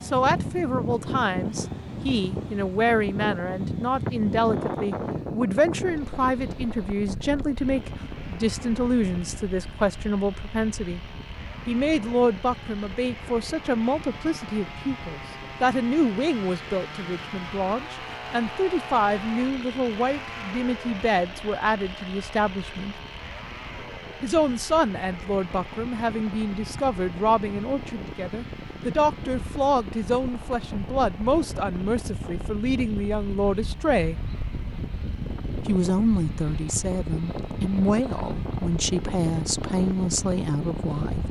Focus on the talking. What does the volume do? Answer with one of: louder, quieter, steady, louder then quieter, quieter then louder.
steady.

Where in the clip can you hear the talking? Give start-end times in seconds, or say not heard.
0.0-11.0, 11.7-22.9, 24.2-34.2, 35.6-41.2.